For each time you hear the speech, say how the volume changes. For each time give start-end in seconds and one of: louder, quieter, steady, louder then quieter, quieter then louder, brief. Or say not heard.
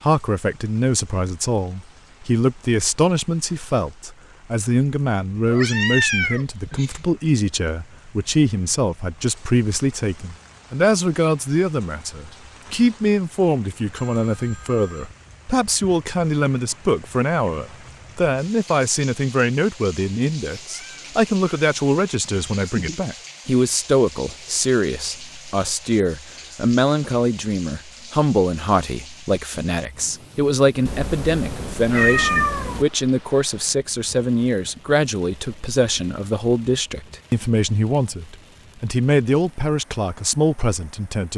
0.0-41.3 steady.